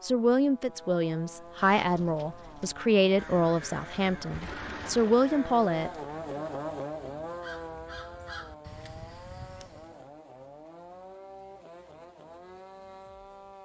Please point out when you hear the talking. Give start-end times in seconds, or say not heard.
0.0-6.4.